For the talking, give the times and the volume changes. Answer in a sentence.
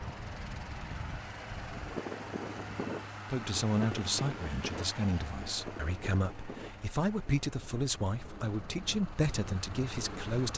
The talking can be heard from 3.3 to 10.5 s, at a steady volume.